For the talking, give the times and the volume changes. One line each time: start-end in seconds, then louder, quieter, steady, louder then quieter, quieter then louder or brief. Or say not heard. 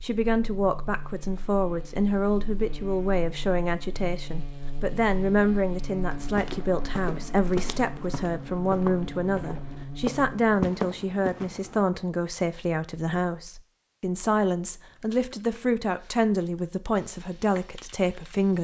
0.0-18.5 steady.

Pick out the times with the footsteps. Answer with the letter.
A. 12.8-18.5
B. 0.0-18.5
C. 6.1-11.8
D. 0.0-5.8
C.